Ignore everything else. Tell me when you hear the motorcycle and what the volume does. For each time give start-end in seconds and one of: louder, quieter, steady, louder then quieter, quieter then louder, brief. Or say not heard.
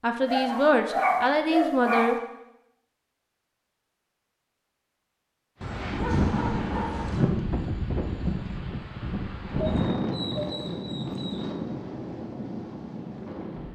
not heard.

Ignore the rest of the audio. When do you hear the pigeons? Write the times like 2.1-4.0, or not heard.
not heard.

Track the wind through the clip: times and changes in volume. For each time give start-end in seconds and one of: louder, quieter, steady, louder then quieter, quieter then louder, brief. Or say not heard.
5.6-13.7 quieter.